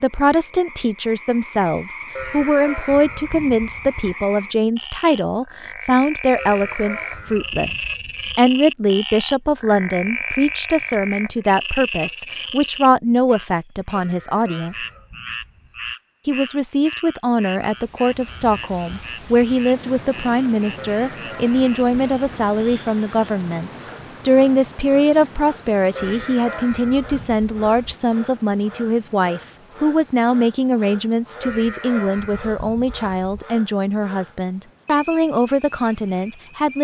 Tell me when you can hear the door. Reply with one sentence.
You can't hear the door here.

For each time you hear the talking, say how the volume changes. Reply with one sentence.
The talking can be heard from 0.0 to 14.8 s, at a steady volume; and from 16.2 to 36.7 s, at a steady volume.